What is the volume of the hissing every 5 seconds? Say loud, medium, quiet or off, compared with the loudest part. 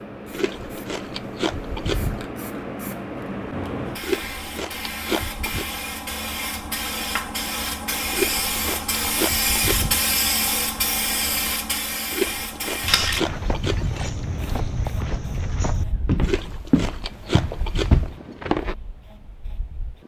medium, loud, loud, quiet.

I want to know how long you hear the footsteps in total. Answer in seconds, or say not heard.
6 s.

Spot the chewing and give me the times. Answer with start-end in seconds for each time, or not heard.
0.3-2.2, 4.0-5.7, 8.1-10.0, 12.1-14.1, 16.2-18.1.